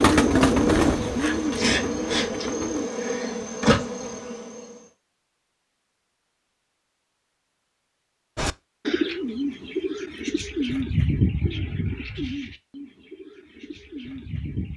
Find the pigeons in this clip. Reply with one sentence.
The pigeons can be heard from 0.0 to 2.9 s and from 8.3 to 14.7 s.